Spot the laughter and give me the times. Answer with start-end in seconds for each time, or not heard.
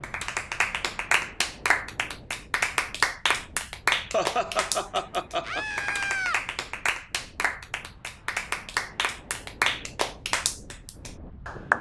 4.1-5.7.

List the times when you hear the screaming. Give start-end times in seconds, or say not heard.
5.4-6.4.